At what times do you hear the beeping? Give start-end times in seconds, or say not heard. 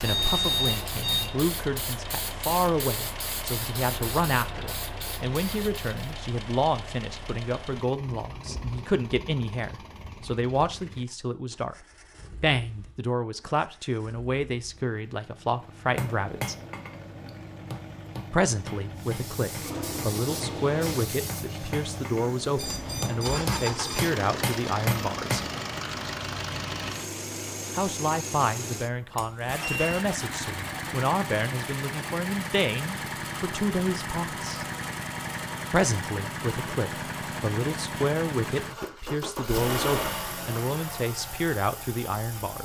0.0-1.2, 22.6-24.1, 29.1-30.0.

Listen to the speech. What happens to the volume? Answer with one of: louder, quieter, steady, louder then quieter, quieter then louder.
steady.